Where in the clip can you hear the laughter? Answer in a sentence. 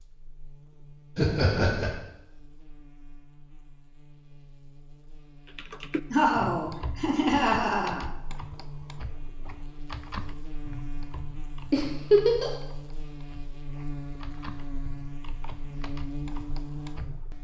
The laughter can be heard from 1.1 to 1.9 s, from 6.1 to 8.1 s and from 11.7 to 12.5 s.